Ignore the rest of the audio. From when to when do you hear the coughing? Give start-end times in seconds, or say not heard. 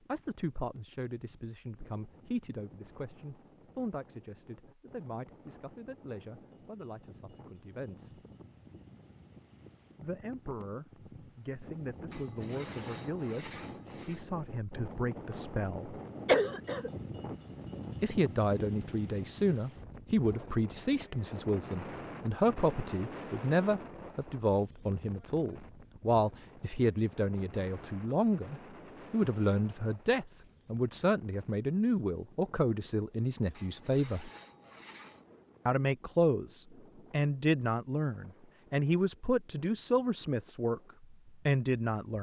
16.2-16.9.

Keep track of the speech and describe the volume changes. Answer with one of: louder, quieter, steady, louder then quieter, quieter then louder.
louder.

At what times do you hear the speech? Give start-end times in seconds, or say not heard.
0.1-8.2, 10.0-16.0, 18.0-34.3, 35.6-42.1.